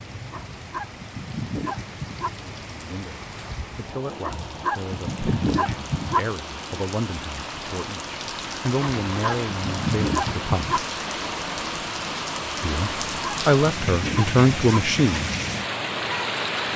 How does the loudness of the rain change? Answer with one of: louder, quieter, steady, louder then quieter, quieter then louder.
louder.